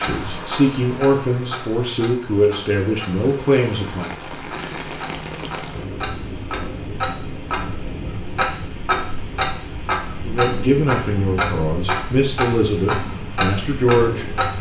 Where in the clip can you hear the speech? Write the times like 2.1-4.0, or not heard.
0.0-4.1, 10.2-14.2.